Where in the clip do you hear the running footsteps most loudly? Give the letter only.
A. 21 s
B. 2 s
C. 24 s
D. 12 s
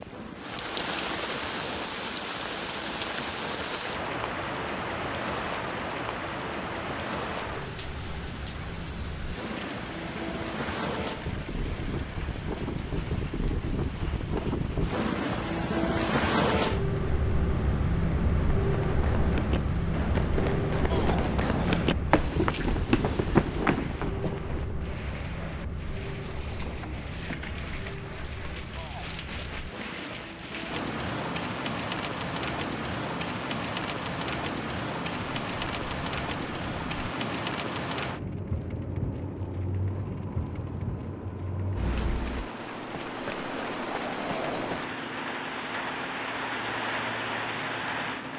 C.